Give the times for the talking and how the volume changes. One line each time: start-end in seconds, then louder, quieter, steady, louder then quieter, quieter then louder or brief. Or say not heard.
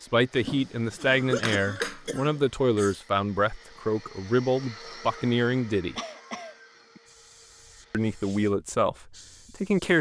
0.0-6.0 steady
7.9-9.9 brief.